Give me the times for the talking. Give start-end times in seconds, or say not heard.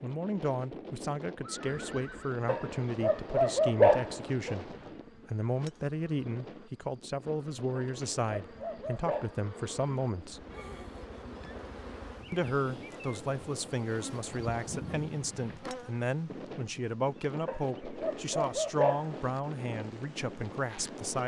0.0-10.4, 12.3-21.2.